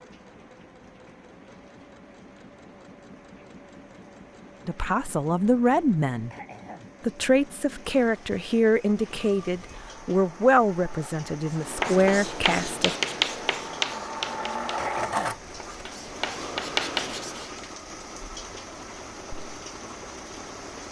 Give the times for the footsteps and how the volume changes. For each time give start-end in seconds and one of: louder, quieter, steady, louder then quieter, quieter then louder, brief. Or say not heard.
not heard.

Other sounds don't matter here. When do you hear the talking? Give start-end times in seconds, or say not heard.
4.7-6.3, 7.0-12.9.